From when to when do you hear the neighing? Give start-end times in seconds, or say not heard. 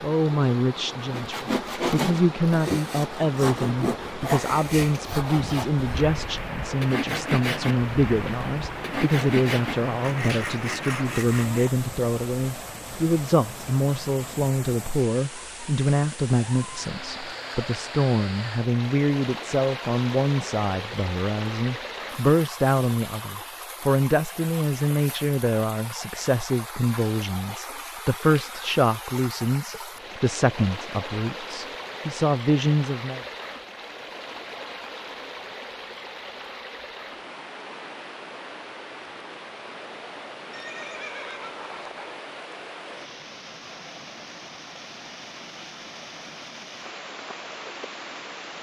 40.5-42.1.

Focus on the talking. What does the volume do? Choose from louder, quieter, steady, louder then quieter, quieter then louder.
steady.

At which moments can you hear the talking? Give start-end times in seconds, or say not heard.
0.0-33.2.